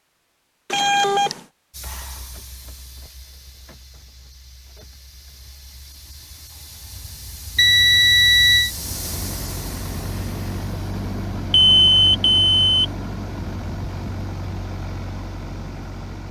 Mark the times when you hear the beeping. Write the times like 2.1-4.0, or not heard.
0.7-1.4, 7.5-8.7, 11.5-12.8.